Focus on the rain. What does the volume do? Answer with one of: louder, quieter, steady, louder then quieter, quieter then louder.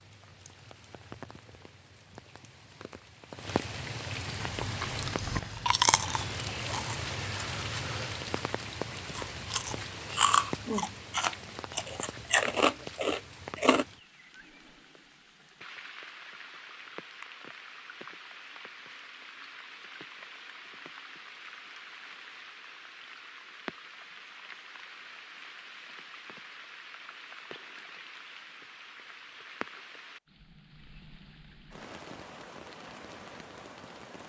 quieter.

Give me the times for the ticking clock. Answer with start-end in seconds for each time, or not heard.
not heard.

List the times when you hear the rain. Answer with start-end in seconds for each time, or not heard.
0.0-34.2.